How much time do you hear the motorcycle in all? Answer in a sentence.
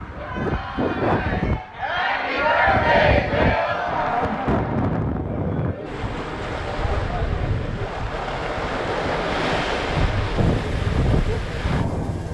You can hear the motorcycle for 2 seconds altogether.